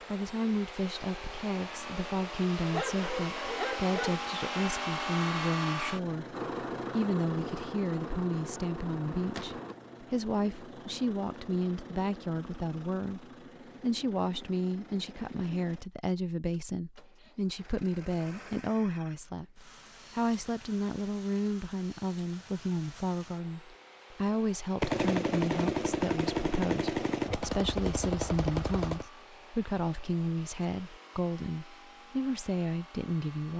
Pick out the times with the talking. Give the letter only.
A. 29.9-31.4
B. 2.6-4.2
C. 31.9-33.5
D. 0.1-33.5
D.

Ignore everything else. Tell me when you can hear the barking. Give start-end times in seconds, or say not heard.
2.6-4.2.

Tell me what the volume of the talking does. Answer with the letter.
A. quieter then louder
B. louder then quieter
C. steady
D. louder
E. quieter
C.